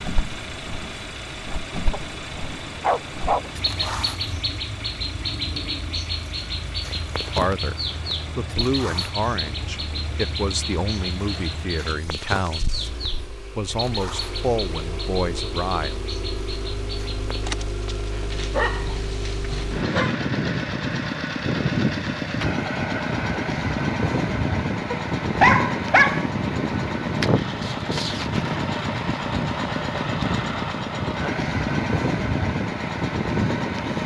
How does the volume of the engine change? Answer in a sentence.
The volume of the engine goes up.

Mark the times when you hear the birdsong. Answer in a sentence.
The birdsong can be heard from 0.0 to 17.5 s.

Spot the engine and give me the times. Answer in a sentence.
You can hear the engine from 0.0 to 34.0 s.